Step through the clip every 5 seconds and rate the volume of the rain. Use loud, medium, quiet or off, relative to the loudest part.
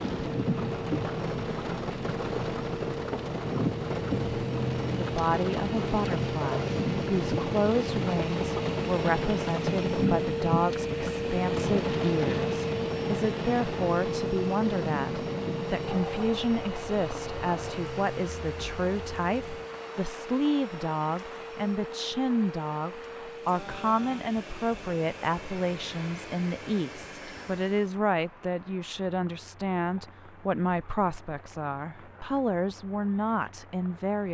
loud, loud, loud, medium, quiet, quiet, quiet.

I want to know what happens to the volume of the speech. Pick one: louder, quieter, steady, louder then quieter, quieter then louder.
steady.